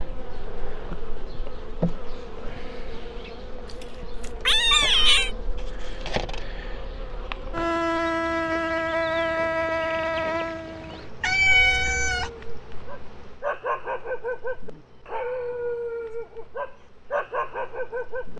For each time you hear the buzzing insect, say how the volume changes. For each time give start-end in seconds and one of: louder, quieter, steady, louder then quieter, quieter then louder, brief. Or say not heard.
0.0-18.3 louder then quieter.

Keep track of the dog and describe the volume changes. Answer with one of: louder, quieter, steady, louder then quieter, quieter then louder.
louder.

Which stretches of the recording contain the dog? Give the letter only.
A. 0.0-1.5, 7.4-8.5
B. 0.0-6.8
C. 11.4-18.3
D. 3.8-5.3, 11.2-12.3
C.